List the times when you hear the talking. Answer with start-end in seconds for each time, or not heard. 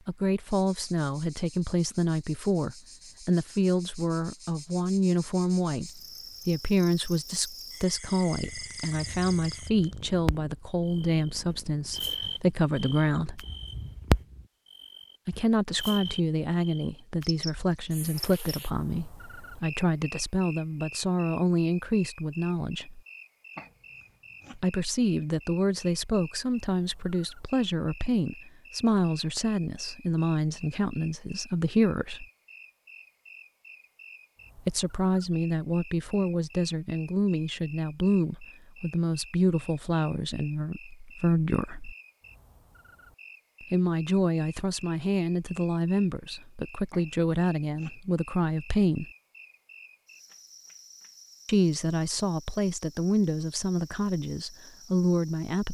0.1-13.4, 15.2-23.0, 24.6-32.2, 34.5-42.0, 43.6-49.1, 51.5-55.6.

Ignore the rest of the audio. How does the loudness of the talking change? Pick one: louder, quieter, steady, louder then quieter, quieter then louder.
steady.